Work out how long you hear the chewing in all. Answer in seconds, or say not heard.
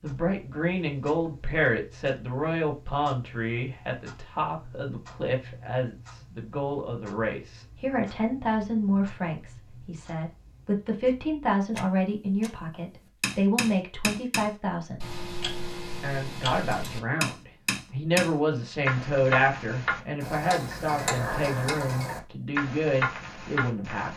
not heard.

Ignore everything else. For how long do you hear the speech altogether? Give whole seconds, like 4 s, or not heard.
23 s.